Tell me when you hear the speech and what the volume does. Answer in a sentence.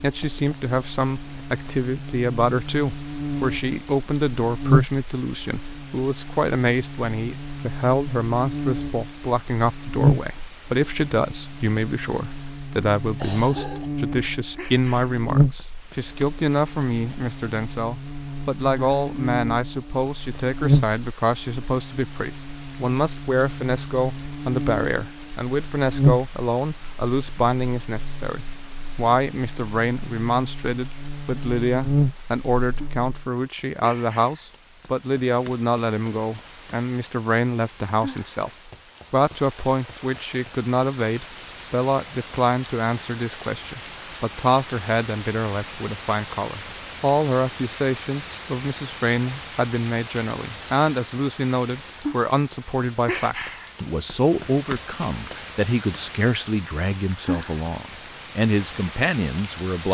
The speech can be heard from 0.0 to 59.9 s, at a steady volume.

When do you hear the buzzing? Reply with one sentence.
You can hear the buzzing from 0.0 to 33.3 s.